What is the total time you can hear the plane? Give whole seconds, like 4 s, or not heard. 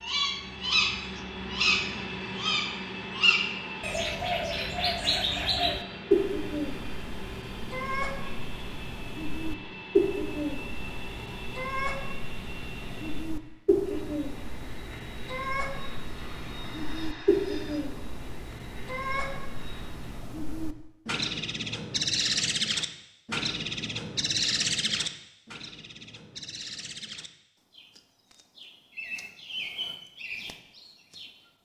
20 s.